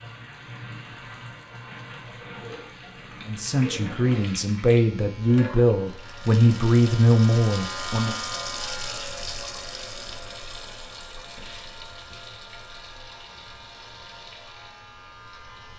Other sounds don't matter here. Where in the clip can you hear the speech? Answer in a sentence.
You can hear the speech from 3.2 to 8.2 s.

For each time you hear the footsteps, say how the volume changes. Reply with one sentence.
The footsteps can't be heard in this clip.